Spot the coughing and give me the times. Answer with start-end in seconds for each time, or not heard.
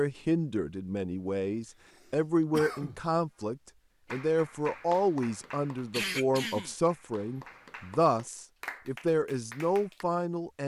2.5-3.0, 5.9-6.8.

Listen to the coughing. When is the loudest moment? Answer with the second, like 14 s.
6 s.